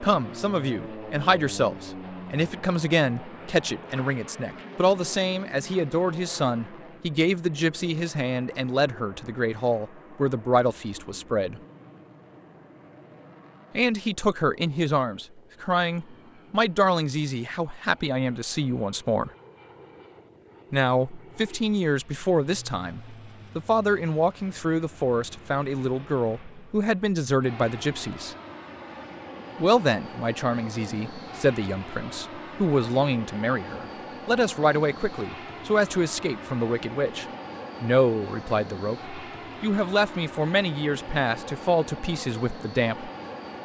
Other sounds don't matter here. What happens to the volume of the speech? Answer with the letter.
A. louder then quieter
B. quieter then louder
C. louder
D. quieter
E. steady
E.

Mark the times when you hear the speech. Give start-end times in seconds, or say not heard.
0.0-11.6, 13.8-19.3, 20.7-28.4, 29.6-43.1.